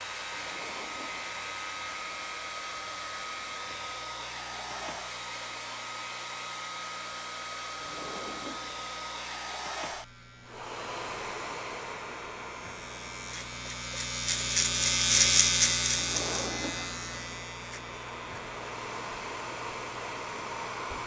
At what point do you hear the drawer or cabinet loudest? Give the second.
16 s.